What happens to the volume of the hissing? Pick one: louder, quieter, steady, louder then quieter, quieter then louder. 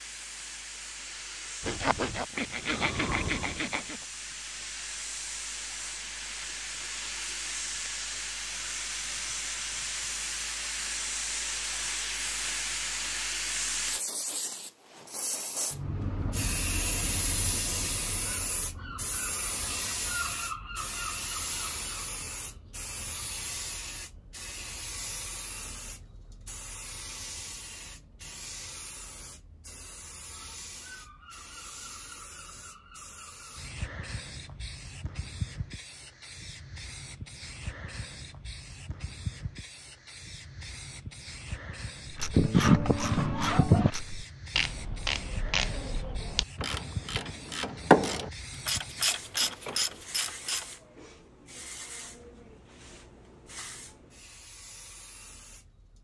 quieter.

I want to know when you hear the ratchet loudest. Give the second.
48 s.